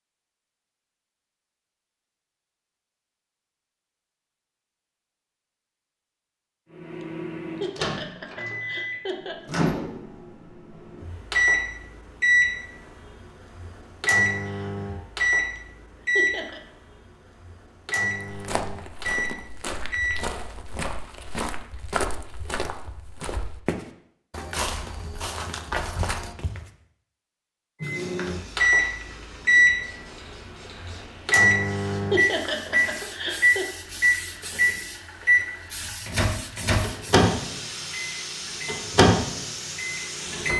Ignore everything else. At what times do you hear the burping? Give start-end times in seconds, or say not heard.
not heard.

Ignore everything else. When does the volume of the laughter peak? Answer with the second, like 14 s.
32 s.